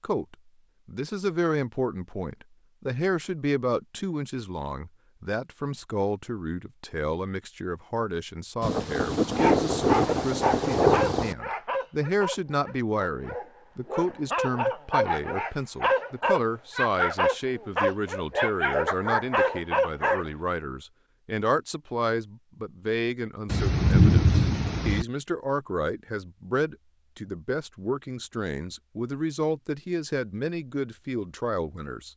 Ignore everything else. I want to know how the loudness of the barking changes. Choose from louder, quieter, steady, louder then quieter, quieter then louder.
quieter then louder.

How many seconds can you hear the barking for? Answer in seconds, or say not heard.
11 s.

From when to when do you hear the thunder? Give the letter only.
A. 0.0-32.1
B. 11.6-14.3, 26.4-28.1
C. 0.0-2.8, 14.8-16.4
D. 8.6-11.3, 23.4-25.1
D.